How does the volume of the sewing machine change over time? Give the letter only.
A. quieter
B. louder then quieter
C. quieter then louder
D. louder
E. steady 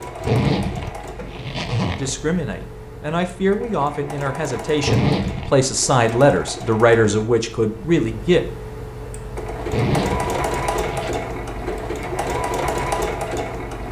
D.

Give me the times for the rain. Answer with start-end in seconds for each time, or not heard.
not heard.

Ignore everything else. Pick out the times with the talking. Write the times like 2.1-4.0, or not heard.
1.9-8.4.